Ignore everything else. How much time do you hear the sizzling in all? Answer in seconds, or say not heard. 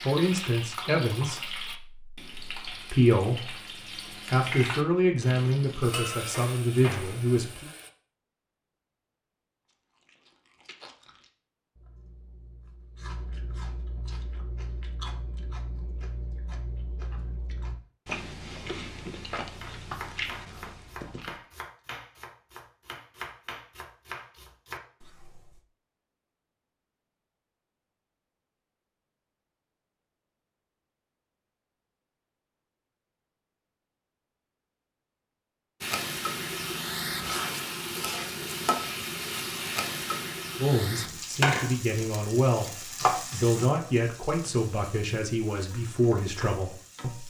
19 s.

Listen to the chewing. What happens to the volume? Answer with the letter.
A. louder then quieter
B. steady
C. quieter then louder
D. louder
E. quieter
D.